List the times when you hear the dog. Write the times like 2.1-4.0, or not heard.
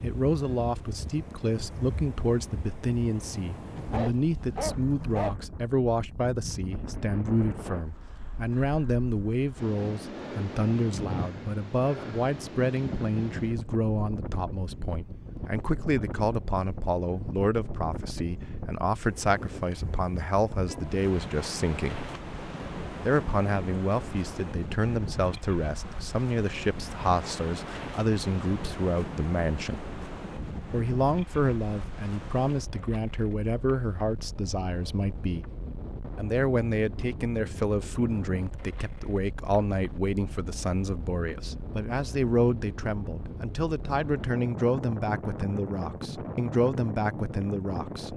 3.8-5.3.